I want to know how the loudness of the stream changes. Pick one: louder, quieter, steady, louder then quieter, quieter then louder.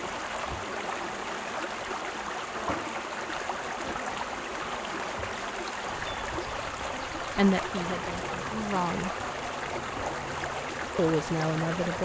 steady.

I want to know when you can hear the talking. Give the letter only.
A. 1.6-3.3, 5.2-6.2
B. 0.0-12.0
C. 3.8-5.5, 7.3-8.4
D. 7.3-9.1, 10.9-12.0
D.